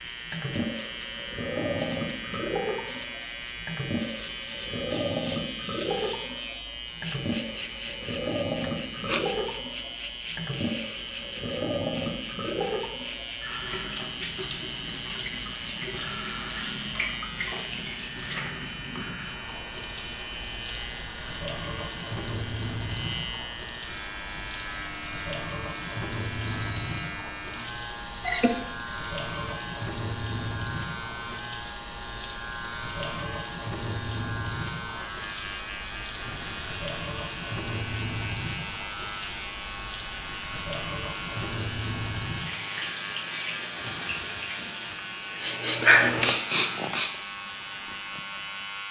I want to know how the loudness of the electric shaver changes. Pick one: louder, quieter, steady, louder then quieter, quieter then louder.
steady.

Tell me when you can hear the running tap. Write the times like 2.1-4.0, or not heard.
0.0-48.8.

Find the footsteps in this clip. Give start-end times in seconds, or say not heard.
not heard.